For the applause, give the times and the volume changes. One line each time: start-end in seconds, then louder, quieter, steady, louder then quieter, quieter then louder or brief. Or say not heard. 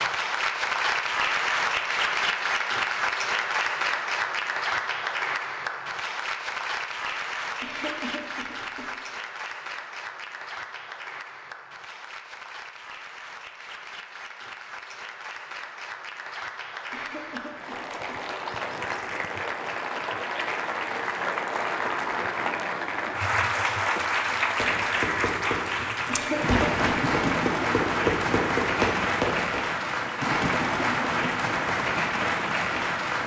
0.0-33.2 quieter then louder.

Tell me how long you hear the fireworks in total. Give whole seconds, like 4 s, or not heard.
5 s.